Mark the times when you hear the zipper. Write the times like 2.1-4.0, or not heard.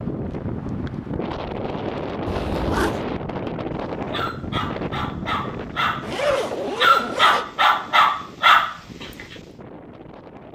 2.2-3.0, 6.0-7.5.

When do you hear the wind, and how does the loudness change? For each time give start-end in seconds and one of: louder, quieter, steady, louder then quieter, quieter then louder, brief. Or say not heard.
0.0-10.5 quieter.